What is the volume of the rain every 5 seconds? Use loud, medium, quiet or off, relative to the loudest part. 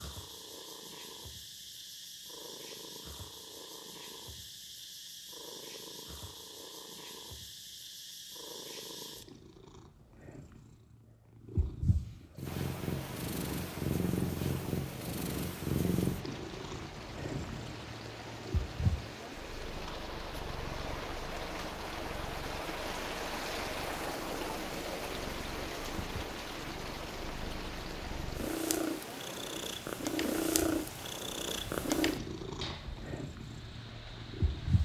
off, off, medium, medium, loud, loud, medium.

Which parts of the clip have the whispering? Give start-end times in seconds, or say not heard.
not heard.